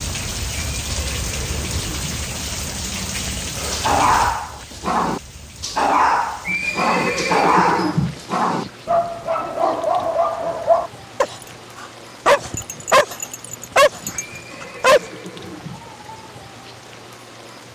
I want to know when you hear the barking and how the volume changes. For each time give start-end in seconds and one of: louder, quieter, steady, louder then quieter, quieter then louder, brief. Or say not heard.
3.7-15.0 steady.